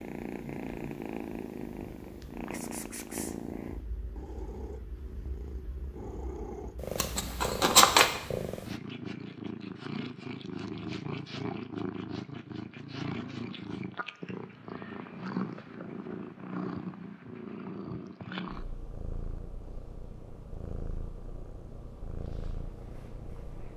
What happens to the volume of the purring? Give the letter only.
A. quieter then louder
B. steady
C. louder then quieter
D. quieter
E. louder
D.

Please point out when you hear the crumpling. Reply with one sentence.
The crumpling can be heard from 7.0 to 8.2 s.